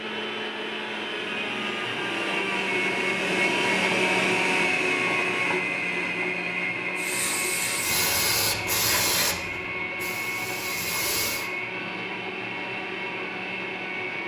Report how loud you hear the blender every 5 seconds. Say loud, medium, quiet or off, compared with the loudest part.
loud, loud, medium.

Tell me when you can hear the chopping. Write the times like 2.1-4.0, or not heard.
not heard.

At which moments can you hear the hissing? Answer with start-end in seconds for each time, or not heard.
7.0-11.5.